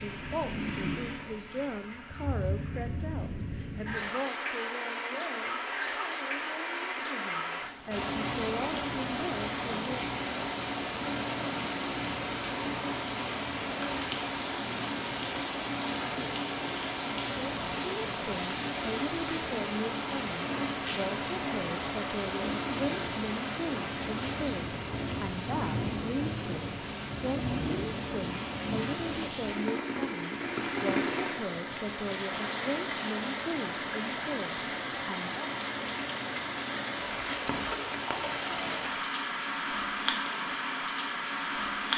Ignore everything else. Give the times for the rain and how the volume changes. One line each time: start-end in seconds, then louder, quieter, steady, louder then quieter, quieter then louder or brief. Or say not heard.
0.0-41.9 steady.